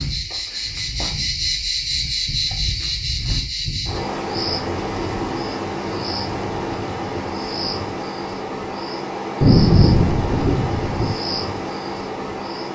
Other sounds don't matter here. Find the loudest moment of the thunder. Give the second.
10 s.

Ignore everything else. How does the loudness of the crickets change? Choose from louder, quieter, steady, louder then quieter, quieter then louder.
steady.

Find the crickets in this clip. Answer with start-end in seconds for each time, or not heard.
0.0-12.6.